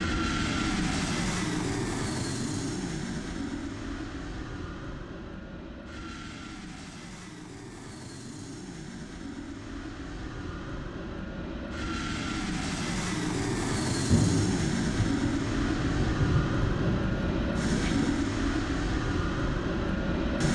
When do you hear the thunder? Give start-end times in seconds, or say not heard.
14.1-18.1.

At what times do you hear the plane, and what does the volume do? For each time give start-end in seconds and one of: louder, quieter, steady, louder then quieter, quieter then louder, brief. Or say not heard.
0.0-20.4 quieter then louder.